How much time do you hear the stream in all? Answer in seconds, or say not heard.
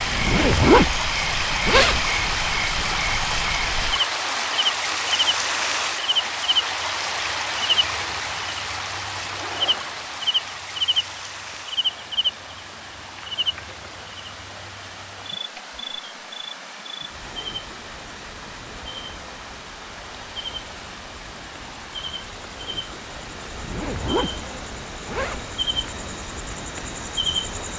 28 s.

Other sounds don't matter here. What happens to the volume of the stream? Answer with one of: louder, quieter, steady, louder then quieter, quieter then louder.
quieter.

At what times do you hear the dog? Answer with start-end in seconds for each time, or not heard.
not heard.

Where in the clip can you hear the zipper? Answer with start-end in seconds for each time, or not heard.
0.1-2.0, 9.2-10.1, 23.5-24.4, 25.1-25.5.